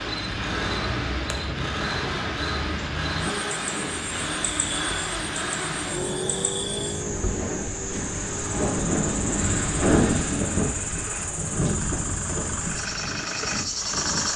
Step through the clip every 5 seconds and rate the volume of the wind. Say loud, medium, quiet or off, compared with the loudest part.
medium, loud, loud.